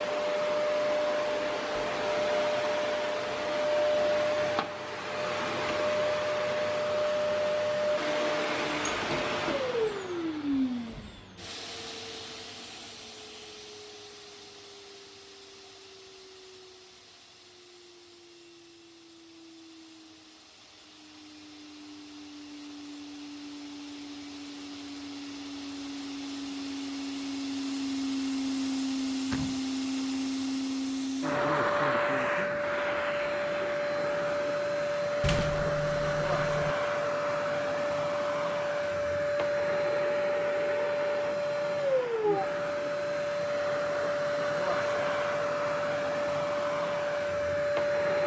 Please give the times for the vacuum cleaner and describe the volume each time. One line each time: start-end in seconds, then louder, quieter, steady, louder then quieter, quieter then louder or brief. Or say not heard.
0.0-48.2 quieter then louder.